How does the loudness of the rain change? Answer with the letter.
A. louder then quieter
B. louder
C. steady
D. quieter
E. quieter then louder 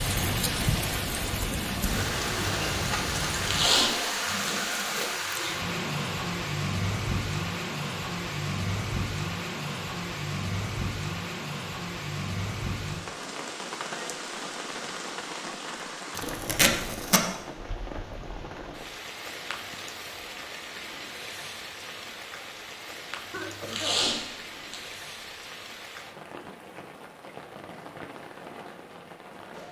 D.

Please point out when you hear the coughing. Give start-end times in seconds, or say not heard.
23.3-24.1.